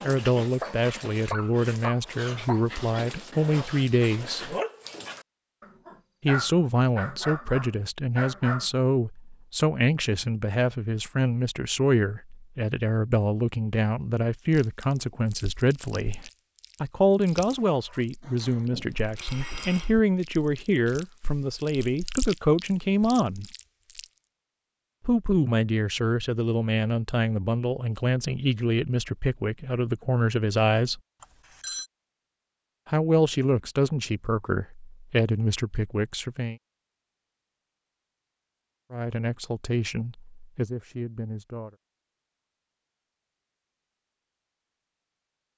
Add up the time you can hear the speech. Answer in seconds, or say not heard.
34 s.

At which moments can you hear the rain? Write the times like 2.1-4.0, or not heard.
not heard.